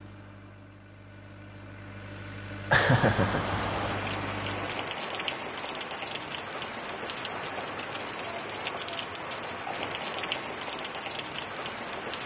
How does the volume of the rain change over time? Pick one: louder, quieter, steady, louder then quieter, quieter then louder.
steady.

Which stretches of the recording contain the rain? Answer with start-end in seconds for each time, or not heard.
2.7-12.2.